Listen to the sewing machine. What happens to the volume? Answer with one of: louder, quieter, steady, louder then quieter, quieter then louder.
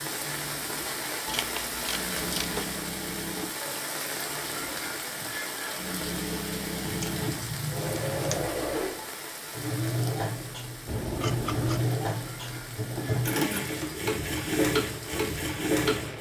louder.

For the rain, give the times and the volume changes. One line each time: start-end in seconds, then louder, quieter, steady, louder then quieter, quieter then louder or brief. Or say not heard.
0.0-16.1 quieter.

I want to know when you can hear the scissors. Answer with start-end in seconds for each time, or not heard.
1.2-2.7, 6.8-8.5, 10.8-11.8.